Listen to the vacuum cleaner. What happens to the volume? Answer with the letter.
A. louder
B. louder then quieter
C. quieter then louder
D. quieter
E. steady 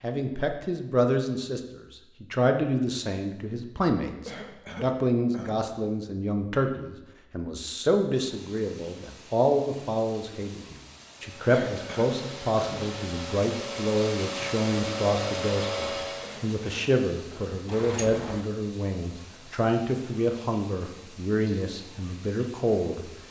A.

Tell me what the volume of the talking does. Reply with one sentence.
The volume of the talking stays about the same.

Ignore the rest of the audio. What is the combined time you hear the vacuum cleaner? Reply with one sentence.
The vacuum cleaner can be heard for 5 seconds in total.